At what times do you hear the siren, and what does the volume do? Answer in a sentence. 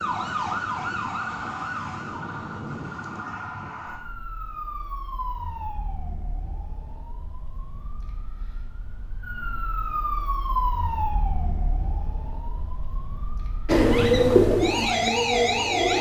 The siren can be heard from 0.0 to 15.9 s, getting quieter then louder.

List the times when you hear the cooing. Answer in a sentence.
You can hear the cooing from 13.7 to 15.9 s.